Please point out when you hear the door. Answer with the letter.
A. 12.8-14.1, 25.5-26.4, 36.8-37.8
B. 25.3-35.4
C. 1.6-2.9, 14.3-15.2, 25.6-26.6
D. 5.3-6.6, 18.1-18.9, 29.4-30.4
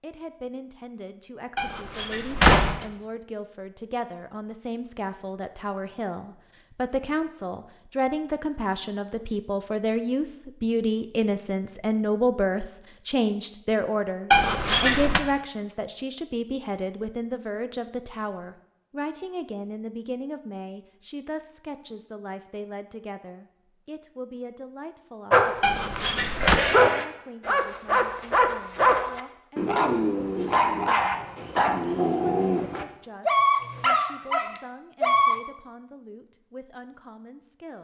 C.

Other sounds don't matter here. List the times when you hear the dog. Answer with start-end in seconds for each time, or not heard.
25.3-35.4.